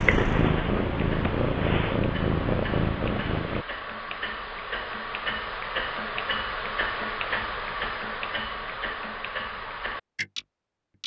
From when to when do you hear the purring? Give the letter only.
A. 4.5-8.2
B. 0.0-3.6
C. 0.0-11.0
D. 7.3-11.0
B.